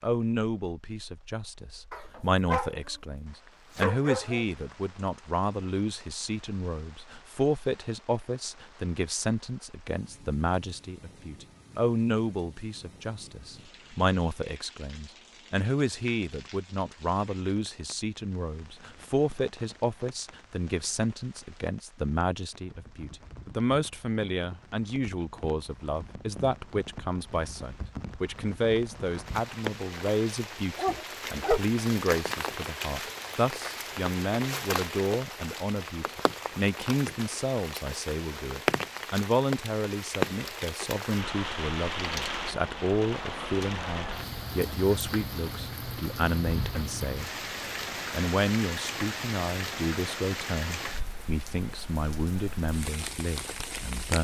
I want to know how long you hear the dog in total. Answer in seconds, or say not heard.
3 s.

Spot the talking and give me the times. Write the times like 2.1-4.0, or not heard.
0.0-47.3, 48.1-54.1.